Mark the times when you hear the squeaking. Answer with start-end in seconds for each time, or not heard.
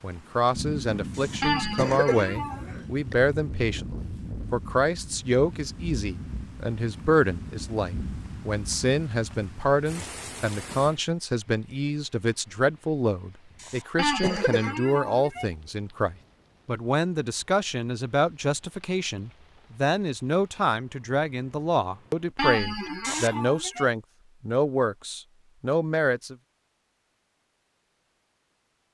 1.4-2.7, 13.9-15.4, 22.4-23.9.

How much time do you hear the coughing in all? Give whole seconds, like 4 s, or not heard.
4 s.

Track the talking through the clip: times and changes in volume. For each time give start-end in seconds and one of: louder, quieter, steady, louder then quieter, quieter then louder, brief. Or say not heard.
0.0-26.4 steady.